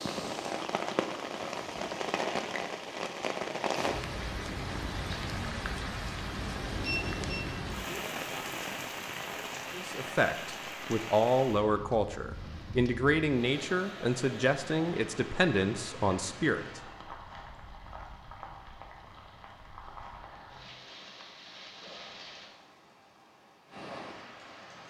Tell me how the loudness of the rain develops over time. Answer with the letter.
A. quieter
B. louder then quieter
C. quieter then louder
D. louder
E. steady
A.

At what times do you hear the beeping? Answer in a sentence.
The beeping can be heard from 6.8 to 7.5 s.